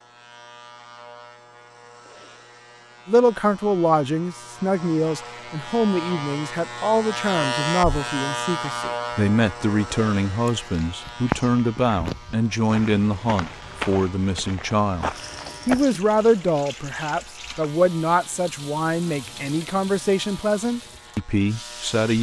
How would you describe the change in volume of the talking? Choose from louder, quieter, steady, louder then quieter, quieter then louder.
steady.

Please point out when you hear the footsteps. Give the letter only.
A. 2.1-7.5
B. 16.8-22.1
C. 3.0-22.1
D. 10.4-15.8
D.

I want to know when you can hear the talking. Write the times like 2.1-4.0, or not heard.
3.0-22.1.